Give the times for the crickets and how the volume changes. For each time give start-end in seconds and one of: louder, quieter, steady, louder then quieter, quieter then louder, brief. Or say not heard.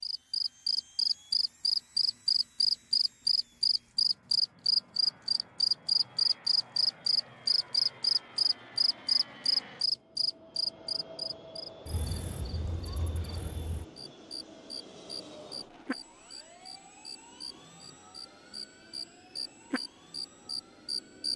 0.0-21.3 quieter.